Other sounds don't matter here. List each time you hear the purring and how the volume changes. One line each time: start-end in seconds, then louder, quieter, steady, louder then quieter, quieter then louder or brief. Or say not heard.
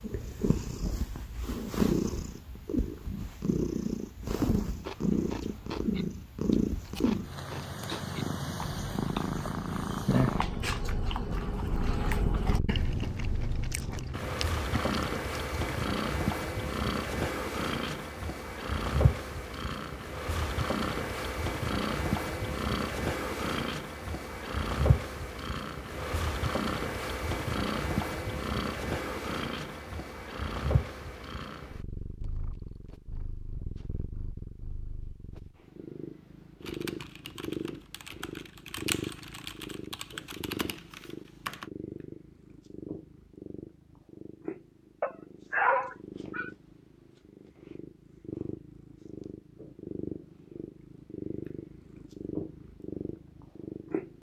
0.0-54.1 quieter.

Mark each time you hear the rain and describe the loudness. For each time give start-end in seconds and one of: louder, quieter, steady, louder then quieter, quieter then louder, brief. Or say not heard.
not heard.